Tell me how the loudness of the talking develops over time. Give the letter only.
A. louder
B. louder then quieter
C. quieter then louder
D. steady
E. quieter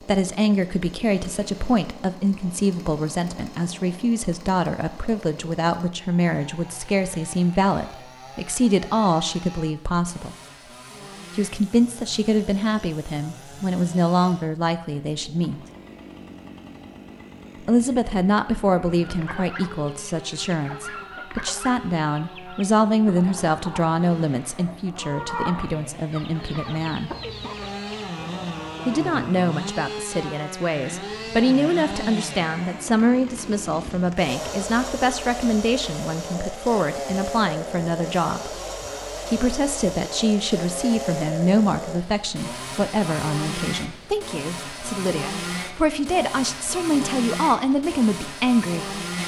D.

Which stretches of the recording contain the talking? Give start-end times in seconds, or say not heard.
0.0-10.3, 11.3-15.7, 17.6-27.1, 28.9-38.5, 39.3-49.0.